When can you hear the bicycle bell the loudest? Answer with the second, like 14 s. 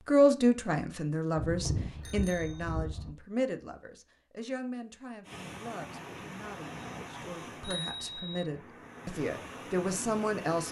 2 s.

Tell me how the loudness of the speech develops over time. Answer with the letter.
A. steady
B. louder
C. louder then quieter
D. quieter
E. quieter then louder
E.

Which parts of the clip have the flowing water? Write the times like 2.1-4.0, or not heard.
5.2-10.6.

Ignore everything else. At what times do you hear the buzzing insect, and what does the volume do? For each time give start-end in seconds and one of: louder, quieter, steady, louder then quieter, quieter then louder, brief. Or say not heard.
not heard.